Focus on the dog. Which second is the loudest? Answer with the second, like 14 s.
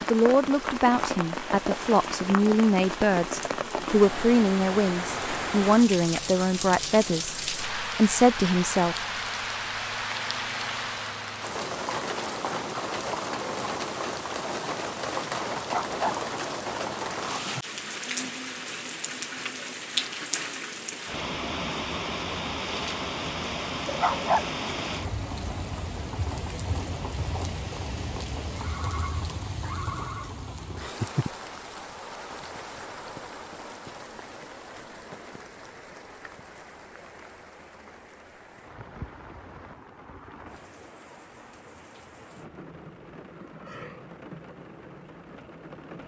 24 s.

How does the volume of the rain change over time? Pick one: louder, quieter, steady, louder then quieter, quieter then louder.
quieter.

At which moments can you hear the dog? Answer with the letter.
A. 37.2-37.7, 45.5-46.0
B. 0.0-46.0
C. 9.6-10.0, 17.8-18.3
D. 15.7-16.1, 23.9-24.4
D.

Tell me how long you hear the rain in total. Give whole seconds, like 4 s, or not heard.
46 s.